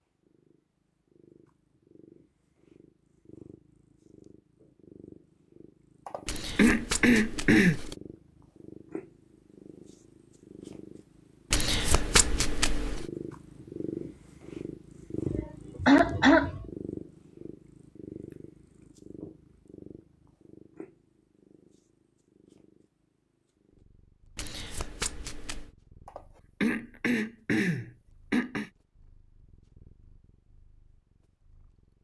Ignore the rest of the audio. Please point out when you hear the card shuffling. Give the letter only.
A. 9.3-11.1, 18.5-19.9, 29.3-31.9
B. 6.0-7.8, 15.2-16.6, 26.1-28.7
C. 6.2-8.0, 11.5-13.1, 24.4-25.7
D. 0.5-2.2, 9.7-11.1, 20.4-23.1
C.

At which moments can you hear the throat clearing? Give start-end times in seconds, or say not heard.
6.0-7.8, 15.2-16.6, 26.1-28.7.